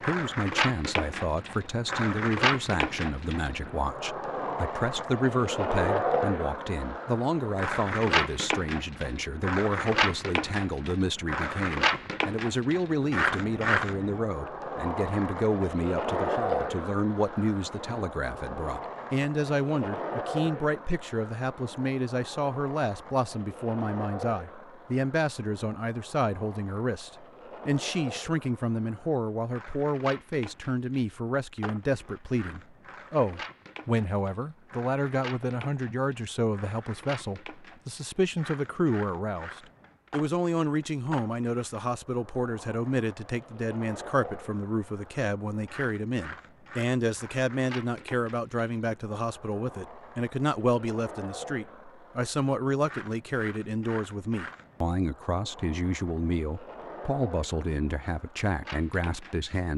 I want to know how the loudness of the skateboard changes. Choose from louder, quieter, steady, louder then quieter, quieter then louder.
quieter.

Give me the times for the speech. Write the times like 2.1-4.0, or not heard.
0.0-59.7.